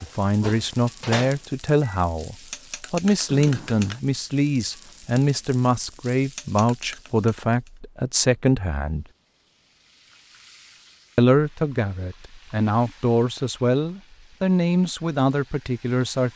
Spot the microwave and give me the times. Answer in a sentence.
The microwave can be heard from 0.4 to 2.0 s.